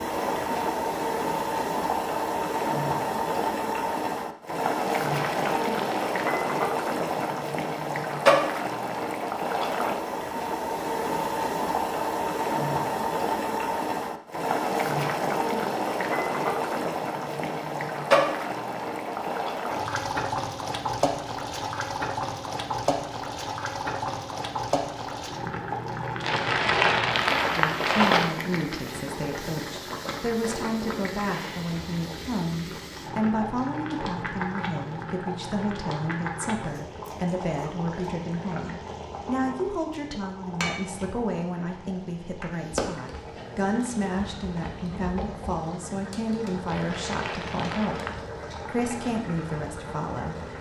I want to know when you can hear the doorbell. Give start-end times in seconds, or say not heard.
not heard.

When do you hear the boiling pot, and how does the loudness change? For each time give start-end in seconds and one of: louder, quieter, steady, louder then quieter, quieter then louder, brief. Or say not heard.
0.0-50.5 quieter.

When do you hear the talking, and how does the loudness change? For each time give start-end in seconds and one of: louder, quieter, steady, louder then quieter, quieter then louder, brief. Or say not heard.
27.5-50.5 steady.